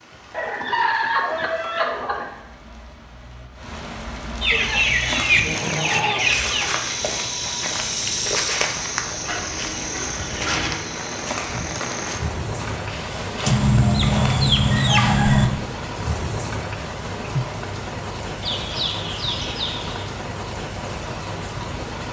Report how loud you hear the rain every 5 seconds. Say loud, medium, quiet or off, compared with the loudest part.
medium, medium, loud, loud, loud.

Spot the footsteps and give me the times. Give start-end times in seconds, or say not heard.
4.5-15.3.